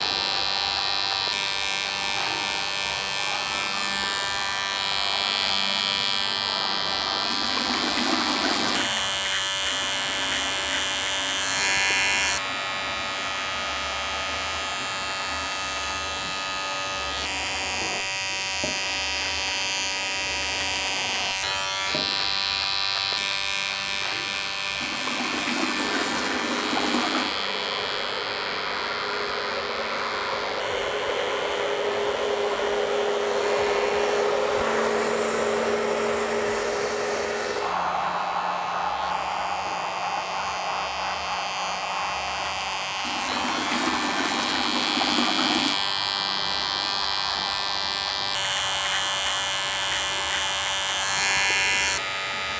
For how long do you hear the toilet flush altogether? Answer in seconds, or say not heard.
7 s.